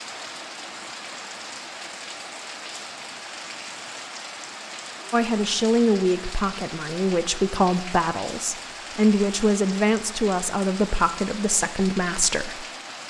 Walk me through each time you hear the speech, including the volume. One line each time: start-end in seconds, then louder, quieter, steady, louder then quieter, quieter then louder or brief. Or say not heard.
5.1-12.7 steady.